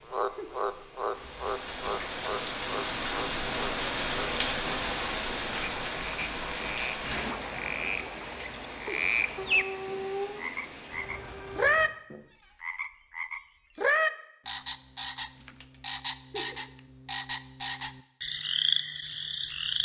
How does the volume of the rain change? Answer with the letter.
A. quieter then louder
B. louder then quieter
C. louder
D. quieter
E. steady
B.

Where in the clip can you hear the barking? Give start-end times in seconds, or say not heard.
9.3-10.5.